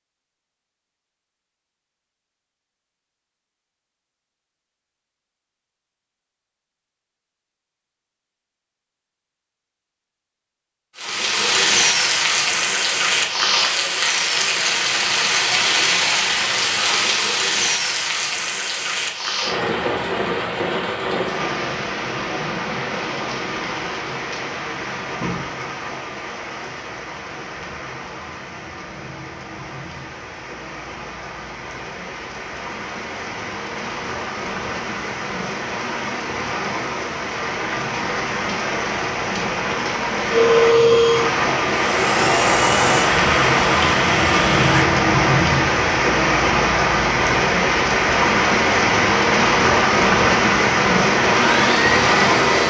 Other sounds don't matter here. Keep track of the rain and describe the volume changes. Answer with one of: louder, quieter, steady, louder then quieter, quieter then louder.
quieter then louder.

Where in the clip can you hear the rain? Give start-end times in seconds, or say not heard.
10.9-52.6.